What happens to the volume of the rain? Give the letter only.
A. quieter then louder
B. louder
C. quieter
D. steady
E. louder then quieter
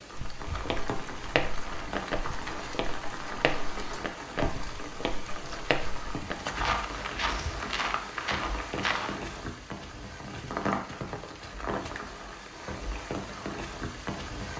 D.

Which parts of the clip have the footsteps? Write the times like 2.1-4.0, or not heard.
0.1-9.2.